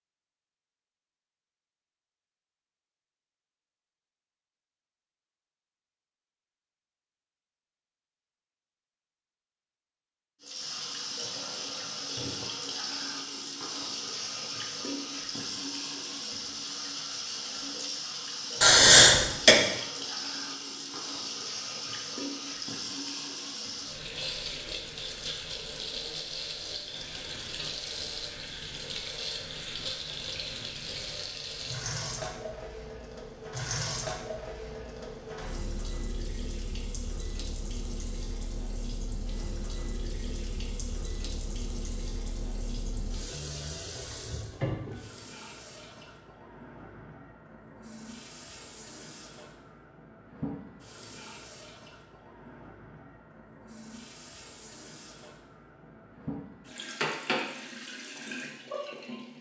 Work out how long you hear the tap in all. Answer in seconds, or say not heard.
49 s.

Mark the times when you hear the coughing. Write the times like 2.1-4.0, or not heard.
18.6-19.6.